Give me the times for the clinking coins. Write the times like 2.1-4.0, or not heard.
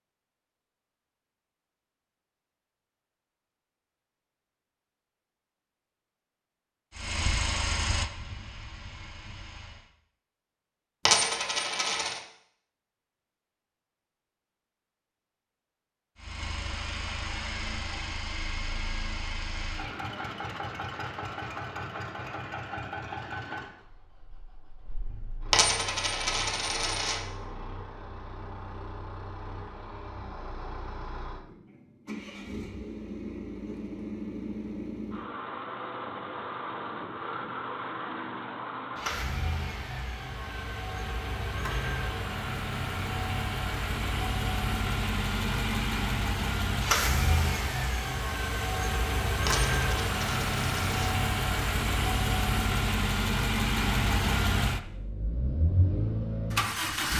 11.1-12.2, 25.5-27.2, 49.5-51.1.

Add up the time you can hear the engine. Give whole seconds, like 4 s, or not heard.
44 s.